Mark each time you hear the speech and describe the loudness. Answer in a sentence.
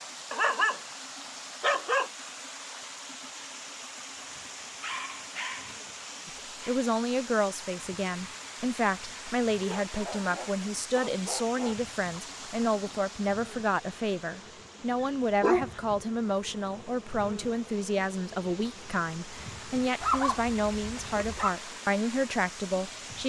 The speech can be heard from 6.2 to 23.2 s, at a steady volume.